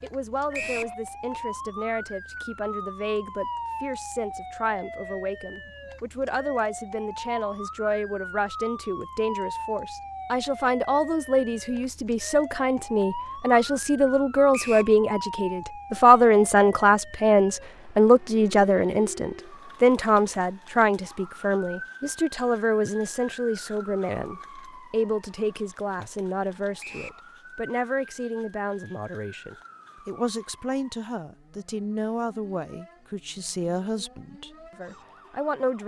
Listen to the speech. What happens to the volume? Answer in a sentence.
The loudness of the speech goes up, then down.